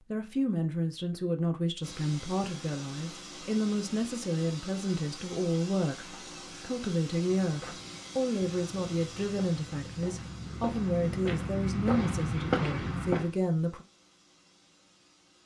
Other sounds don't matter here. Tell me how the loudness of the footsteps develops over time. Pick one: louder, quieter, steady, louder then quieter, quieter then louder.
louder.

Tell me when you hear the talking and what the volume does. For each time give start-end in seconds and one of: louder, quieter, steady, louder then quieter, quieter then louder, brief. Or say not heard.
0.1-13.8 steady.